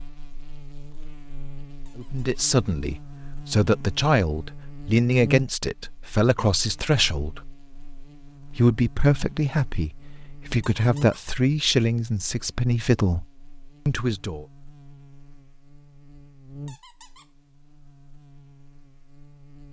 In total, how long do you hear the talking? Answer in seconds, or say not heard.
11 s.